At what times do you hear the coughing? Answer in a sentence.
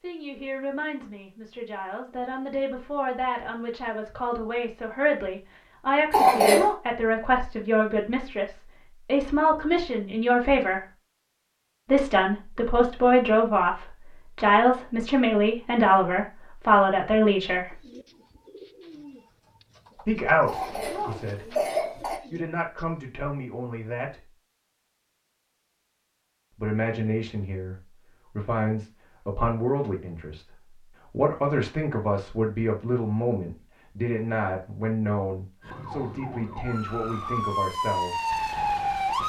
The coughing can be heard from 6.1 to 6.8 s and from 20.4 to 22.2 s.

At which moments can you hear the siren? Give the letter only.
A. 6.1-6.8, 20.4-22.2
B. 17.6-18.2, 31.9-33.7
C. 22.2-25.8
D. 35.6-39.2
D.